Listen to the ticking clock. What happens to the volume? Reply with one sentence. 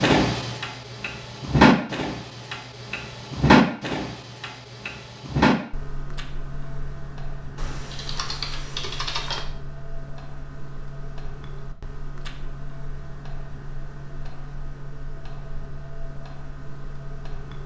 The volume of the ticking clock goes down.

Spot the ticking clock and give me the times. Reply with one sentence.
You can hear the ticking clock from 0.0 to 17.6 s.